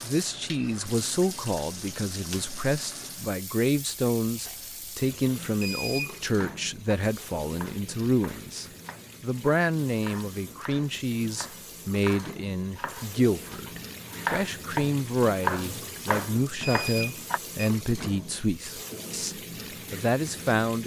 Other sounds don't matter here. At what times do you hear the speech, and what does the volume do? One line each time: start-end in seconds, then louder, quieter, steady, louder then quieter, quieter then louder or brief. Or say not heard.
0.0-20.8 steady.